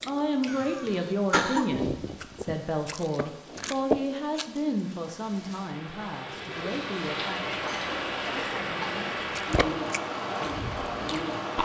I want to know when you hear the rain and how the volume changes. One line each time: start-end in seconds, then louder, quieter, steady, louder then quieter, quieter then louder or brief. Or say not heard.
0.1-11.6 louder.